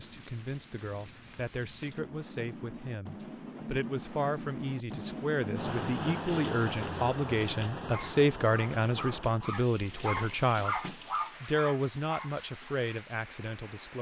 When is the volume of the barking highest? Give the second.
11 s.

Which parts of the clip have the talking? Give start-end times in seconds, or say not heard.
0.0-13.9.